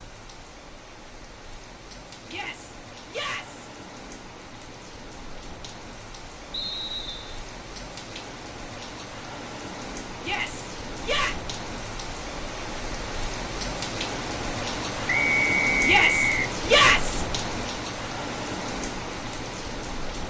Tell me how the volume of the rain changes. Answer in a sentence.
The volume of the rain goes up.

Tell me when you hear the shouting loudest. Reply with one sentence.
The loudest moment of the shouting is at 17 seconds.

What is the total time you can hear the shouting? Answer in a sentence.
The shouting can be heard for 4 seconds in total.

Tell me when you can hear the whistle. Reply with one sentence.
You can hear the whistle from 6.5 to 7.3 s and from 15.1 to 16.5 s.